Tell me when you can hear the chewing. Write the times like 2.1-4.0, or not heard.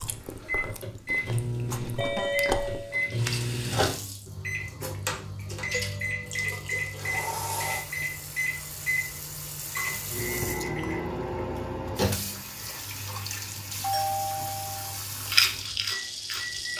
0.0-2.9, 15.2-16.7.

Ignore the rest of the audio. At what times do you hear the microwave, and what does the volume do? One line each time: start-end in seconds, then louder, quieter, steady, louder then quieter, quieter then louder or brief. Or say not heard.
0.4-16.7 quieter.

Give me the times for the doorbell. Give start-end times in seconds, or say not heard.
1.9-3.8, 5.7-6.5, 13.8-14.9.